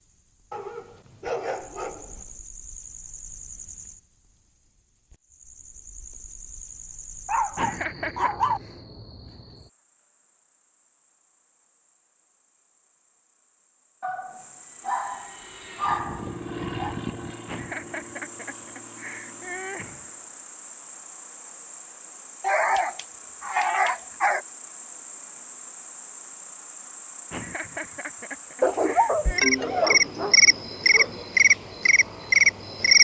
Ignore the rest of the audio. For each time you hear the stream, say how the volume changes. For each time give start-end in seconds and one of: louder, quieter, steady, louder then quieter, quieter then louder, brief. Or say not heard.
not heard.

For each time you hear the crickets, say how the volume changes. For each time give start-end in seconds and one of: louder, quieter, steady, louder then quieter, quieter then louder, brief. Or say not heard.
0.0-32.9 louder.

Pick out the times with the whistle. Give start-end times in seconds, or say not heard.
not heard.